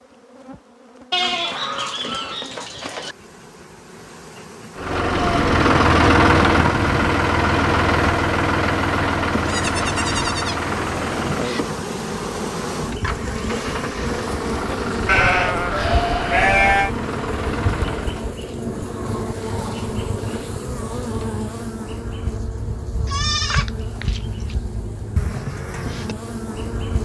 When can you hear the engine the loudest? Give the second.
6 s.